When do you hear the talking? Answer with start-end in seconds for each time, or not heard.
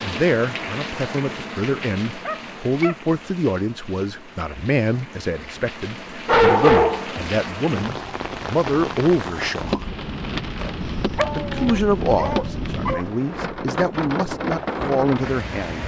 0.0-9.9, 11.3-15.8.